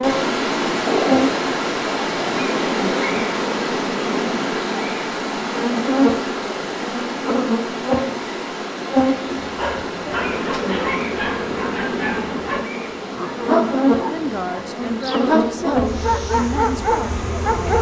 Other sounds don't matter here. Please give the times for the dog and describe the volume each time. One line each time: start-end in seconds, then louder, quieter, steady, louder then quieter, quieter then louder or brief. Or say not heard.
9.4-17.7 louder.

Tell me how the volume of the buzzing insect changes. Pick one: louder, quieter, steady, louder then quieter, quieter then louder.
steady.